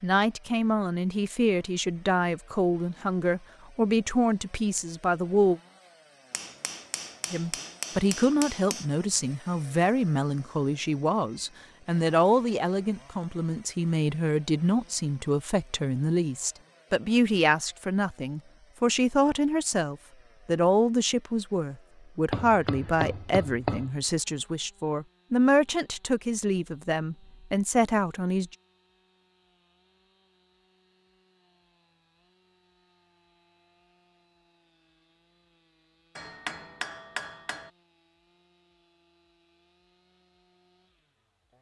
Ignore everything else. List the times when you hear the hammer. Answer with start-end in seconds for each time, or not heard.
6.3-8.8, 22.3-23.9, 36.1-37.7.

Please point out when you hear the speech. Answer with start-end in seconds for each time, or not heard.
0.0-5.6, 7.3-28.5.